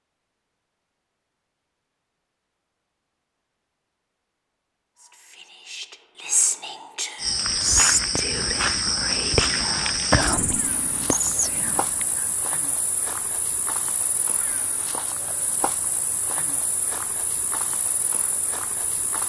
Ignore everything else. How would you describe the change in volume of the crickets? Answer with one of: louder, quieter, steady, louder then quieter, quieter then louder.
quieter.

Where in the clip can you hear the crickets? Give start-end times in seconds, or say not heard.
7.2-19.2.